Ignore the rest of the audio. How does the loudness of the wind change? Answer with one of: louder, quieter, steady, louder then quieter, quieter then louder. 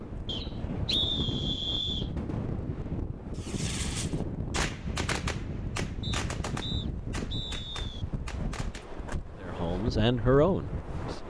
steady.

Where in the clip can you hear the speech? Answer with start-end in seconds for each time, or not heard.
9.3-11.2.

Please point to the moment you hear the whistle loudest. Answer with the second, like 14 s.
1 s.